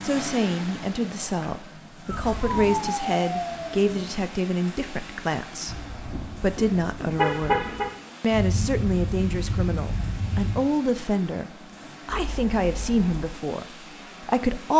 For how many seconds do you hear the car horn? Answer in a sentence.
The car horn can be heard for 4 seconds in total.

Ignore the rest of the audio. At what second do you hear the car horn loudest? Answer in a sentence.
The volume of the car horn peaks at 7 seconds.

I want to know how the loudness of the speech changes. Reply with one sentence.
The volume of the speech stays about the same.